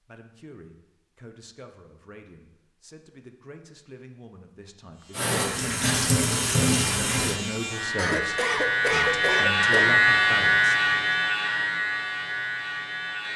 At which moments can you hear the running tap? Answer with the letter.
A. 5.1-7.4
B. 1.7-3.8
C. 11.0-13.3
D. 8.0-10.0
A.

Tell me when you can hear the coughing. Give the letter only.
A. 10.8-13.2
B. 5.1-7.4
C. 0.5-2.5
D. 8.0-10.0
D.